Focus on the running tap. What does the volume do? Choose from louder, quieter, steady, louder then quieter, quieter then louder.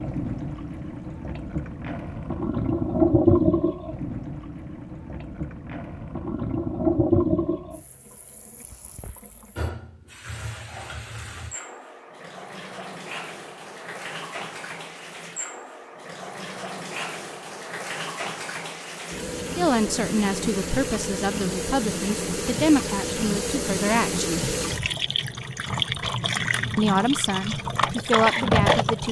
quieter then louder.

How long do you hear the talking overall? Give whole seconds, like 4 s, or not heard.
7 s.